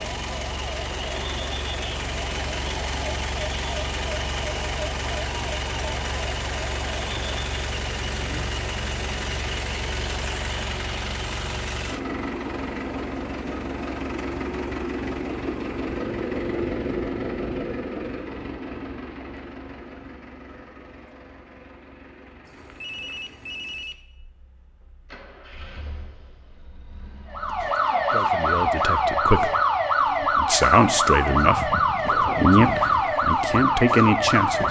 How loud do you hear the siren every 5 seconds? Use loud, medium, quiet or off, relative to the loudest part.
quiet, quiet, off, off, off, loud, loud.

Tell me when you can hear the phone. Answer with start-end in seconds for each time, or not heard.
22.4-23.9.